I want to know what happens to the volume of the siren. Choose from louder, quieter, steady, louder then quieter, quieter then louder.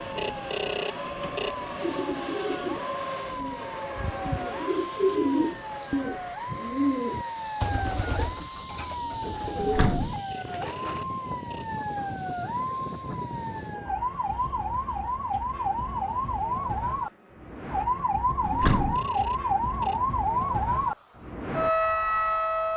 louder.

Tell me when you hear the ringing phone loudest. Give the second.
1 s.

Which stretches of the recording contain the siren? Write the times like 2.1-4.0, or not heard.
0.1-22.7.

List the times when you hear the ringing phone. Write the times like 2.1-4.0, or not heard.
0.1-1.6, 10.2-11.7, 18.6-20.0.